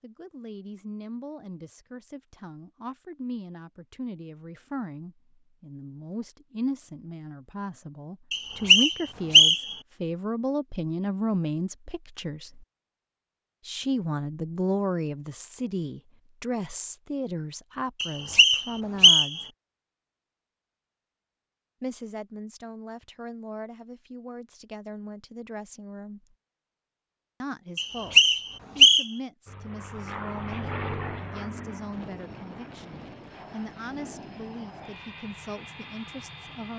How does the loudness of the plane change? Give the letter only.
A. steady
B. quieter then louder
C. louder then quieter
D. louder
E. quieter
E.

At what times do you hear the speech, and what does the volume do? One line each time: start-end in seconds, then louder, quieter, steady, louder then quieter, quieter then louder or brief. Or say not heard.
0.0-12.7 louder
13.7-19.5 quieter
21.8-26.4 steady
27.4-36.7 steady.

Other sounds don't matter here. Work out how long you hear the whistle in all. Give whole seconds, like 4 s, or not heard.
4 s.